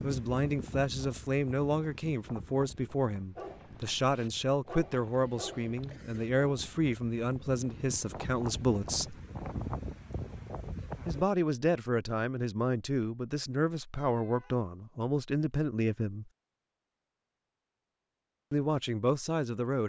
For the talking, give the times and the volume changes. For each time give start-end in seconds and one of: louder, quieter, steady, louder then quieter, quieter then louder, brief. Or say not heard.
0.0-9.2 steady
11.1-16.3 steady
18.5-19.8 brief.